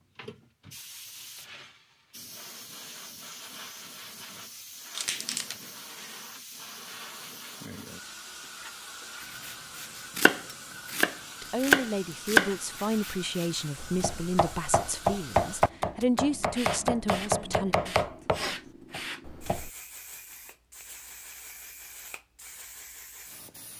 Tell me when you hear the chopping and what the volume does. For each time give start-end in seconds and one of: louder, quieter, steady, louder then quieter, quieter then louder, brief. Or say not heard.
9.2-19.7 louder then quieter.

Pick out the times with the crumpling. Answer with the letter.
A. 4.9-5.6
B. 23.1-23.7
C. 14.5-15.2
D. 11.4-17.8
A.